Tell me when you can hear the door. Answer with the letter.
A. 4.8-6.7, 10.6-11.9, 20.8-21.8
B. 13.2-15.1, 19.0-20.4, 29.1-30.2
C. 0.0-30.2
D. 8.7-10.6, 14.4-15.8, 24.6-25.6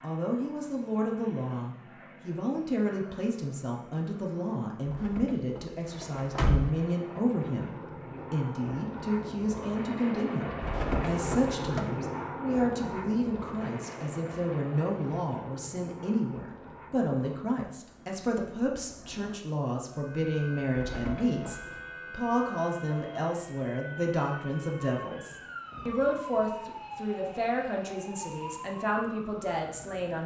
A.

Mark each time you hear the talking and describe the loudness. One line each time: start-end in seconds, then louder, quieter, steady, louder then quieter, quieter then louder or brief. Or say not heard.
0.0-30.2 steady.